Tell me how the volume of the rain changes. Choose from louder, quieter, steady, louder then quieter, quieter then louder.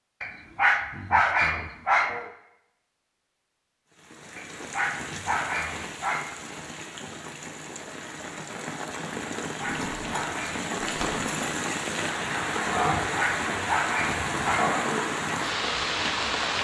louder.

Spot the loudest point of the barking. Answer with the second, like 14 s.
1 s.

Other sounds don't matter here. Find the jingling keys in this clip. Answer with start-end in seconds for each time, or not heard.
9.7-11.6.